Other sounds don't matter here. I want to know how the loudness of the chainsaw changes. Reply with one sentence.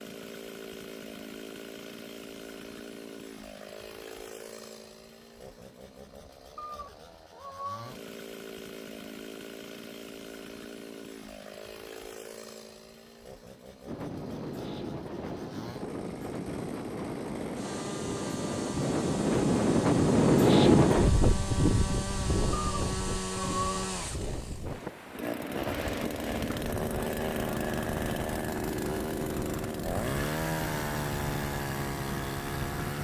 The volume of the chainsaw goes up.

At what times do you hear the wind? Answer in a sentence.
You can hear the wind from 13.8 to 32.9 s.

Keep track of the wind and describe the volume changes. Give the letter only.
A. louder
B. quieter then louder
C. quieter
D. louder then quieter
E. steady
D.